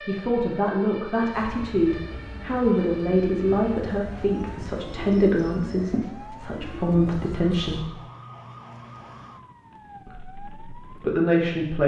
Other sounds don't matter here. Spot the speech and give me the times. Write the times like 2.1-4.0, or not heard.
0.1-7.8, 10.1-11.8.